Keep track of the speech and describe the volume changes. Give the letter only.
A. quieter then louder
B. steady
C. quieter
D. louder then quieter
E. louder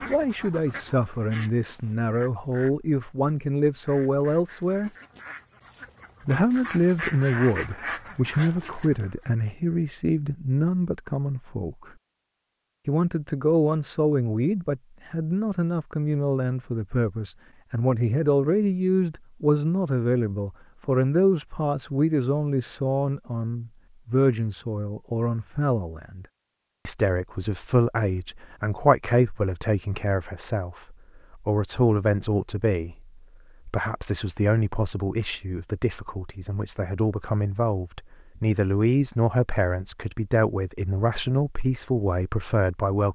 B.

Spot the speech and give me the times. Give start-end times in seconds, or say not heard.
0.1-4.9, 6.2-11.9, 12.8-26.2, 26.9-43.1.